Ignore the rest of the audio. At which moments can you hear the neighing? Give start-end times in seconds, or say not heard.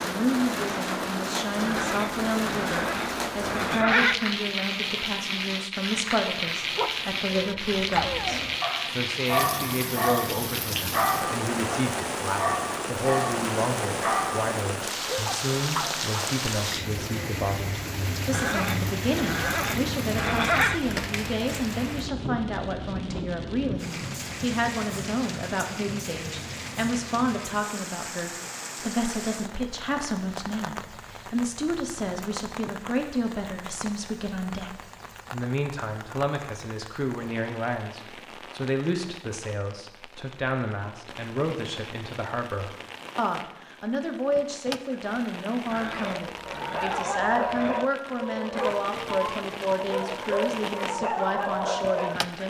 1.6-4.2, 18.3-20.8, 45.7-47.8.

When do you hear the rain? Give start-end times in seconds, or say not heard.
0.0-52.4.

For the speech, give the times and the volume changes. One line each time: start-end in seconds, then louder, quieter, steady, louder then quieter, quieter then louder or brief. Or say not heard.
0.0-52.4 steady.